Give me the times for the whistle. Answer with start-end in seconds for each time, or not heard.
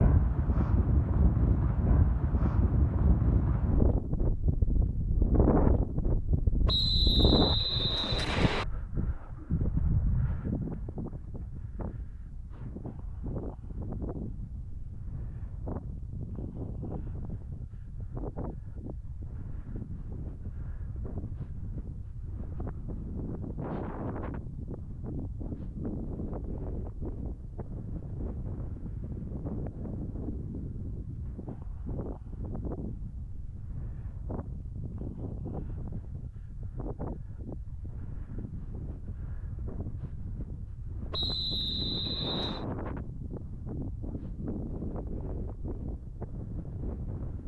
6.7-8.7, 41.1-42.6.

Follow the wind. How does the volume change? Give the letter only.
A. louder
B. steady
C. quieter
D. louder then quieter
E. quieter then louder
C.